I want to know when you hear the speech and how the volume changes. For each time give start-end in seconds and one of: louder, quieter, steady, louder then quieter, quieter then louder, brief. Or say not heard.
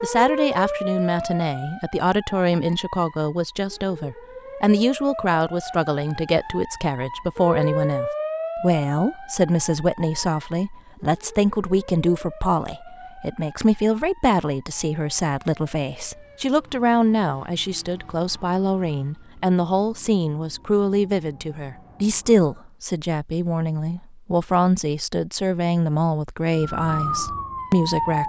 0.0-28.2 steady.